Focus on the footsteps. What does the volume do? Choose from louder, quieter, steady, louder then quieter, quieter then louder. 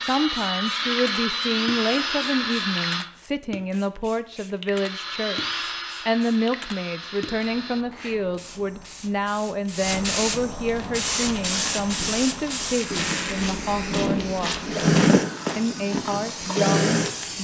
louder then quieter.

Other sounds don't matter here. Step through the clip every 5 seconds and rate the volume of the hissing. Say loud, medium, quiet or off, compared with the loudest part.
medium, medium, loud, medium.